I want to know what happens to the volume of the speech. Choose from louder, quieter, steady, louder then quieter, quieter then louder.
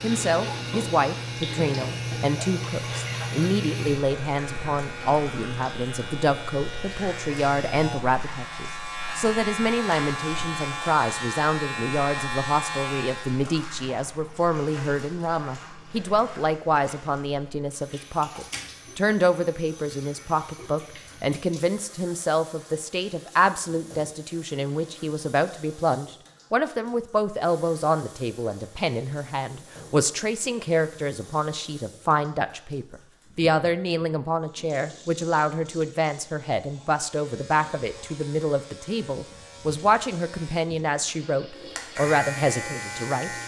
steady.